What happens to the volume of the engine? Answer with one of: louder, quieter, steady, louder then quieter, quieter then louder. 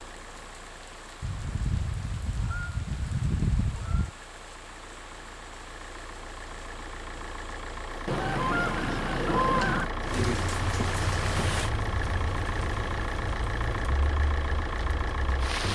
louder.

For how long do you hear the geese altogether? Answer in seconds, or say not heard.
5 s.